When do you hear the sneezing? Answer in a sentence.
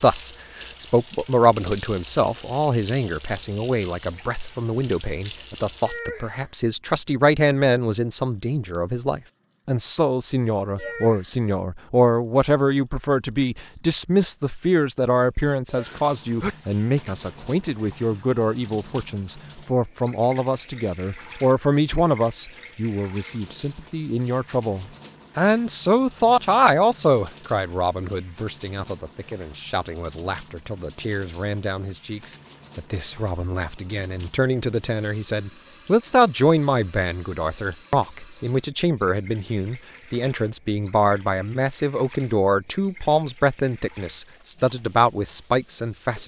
The sneezing can be heard from 15.8 to 16.6 s.